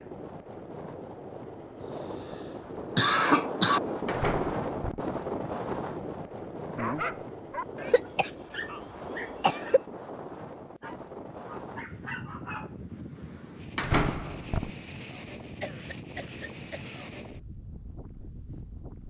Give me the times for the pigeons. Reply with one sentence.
You can't hear the pigeons here.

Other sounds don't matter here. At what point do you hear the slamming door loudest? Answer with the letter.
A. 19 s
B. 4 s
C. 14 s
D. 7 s
C.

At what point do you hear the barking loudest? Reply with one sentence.
The loudest moment of the barking is at 7 seconds.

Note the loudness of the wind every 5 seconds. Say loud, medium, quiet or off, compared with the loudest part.
loud, loud, medium, medium.